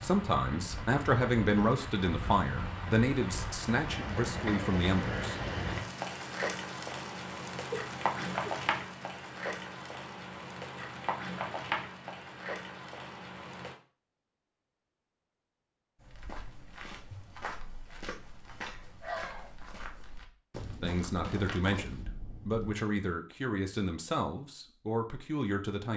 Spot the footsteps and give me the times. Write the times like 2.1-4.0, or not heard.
16.0-22.8.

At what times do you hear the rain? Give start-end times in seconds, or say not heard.
0.0-13.8.